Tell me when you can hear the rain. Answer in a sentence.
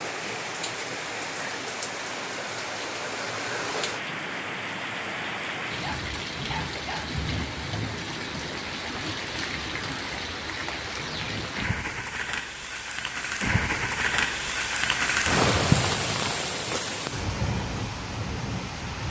You can hear the rain from 0.0 to 19.0 s.